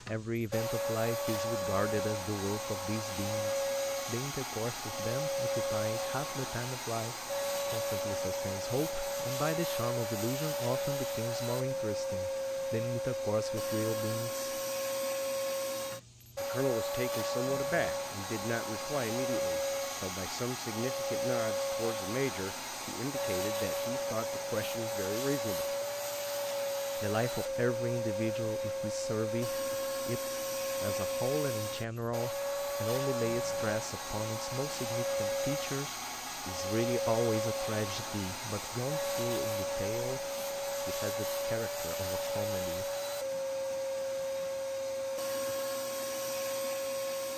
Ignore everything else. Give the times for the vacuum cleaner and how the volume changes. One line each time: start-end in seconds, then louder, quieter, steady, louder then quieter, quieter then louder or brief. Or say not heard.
0.0-47.3 steady.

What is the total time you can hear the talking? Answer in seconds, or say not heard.
40 s.